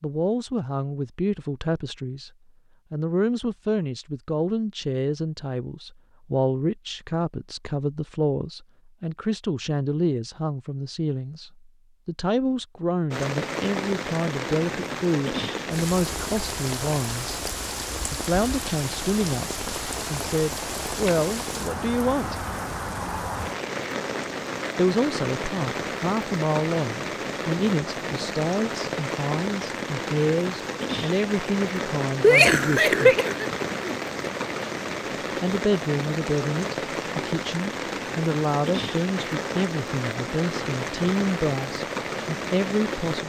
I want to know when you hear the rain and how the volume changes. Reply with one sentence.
You can hear the rain from 13.1 to 43.2 s, at a steady volume.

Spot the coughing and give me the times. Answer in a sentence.
The coughing can be heard from 32.2 to 34.5 s.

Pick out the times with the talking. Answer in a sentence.
You can hear the talking from 0.0 to 2.3 s, from 2.9 to 17.4 s, from 18.1 to 22.4 s, from 24.8 to 33.1 s and from 35.4 to 43.2 s.